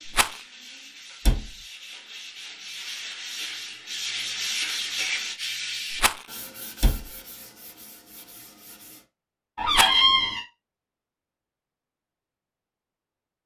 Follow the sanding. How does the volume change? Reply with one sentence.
The volume of the sanding goes up, then down.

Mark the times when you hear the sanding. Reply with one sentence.
The sanding can be heard from 0.0 to 9.1 s.